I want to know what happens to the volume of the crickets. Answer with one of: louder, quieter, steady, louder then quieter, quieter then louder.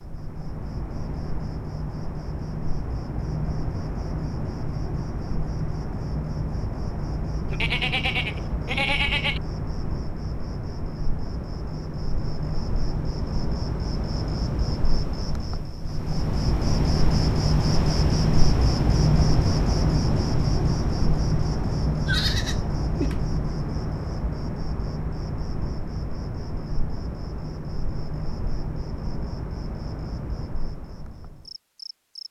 louder then quieter.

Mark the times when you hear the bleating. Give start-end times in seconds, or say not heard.
7.5-9.4, 22.1-23.2.